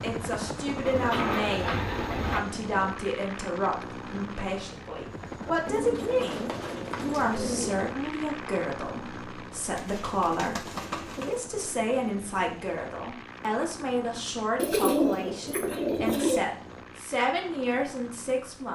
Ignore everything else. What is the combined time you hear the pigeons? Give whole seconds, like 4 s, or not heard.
7 s.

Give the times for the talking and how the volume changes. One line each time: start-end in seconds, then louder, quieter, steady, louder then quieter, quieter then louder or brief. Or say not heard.
0.0-18.7 steady.